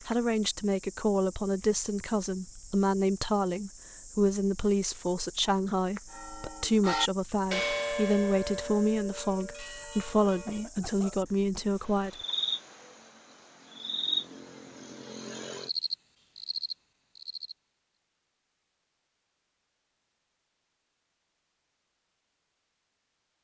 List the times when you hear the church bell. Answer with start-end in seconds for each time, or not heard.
6.0-10.7.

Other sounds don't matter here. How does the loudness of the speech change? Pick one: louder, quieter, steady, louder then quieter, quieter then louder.
steady.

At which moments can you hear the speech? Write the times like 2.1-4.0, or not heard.
0.1-12.2.